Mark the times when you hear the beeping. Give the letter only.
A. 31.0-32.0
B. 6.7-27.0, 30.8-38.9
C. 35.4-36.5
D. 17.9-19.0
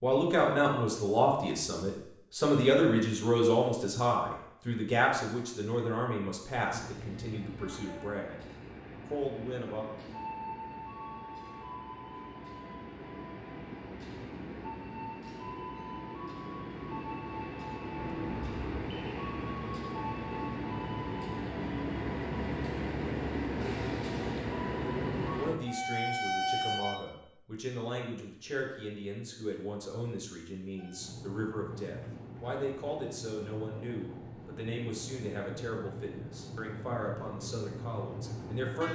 D.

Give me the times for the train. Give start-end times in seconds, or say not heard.
6.7-27.0, 30.8-38.9.